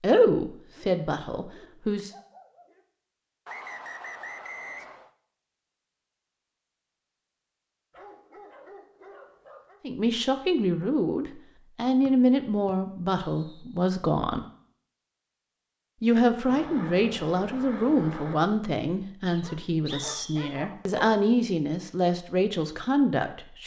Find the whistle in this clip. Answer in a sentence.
The whistle can be heard from 3.5 to 5.1 s, from 12.1 to 13.7 s and from 19.2 to 20.4 s.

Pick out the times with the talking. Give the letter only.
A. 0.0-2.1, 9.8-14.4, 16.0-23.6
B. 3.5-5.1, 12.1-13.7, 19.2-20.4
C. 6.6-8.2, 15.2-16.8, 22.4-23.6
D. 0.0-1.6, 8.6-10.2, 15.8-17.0
A.